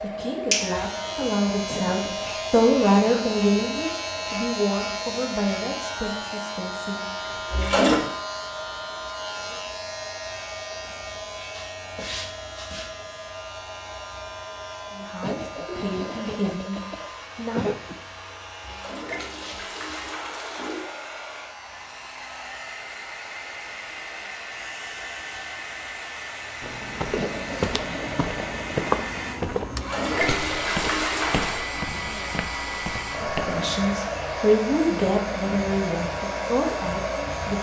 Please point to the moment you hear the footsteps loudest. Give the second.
29 s.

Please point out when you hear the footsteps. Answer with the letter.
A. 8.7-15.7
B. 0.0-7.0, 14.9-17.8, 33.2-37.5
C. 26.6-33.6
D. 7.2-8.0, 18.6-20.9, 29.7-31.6
C.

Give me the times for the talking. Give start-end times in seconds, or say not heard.
0.0-7.0, 14.9-17.8, 33.2-37.5.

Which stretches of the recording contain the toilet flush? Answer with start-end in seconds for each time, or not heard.
7.2-8.0, 18.6-20.9, 29.7-31.6.